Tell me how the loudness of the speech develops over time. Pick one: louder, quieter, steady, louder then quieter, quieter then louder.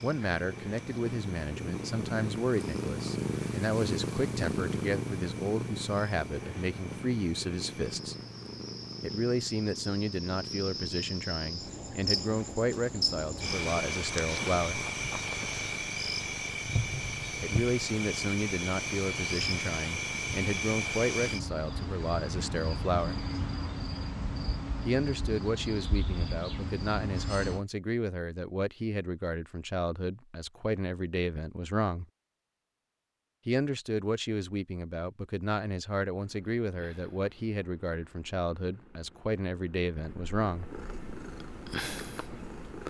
steady.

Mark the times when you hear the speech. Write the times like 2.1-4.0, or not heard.
0.0-8.2, 9.0-14.8, 17.4-23.2, 24.9-32.0, 33.5-40.6.